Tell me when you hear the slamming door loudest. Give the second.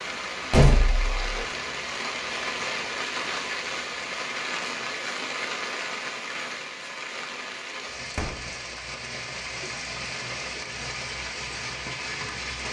1 s.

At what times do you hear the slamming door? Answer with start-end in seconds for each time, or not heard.
0.5-1.4, 8.1-8.5.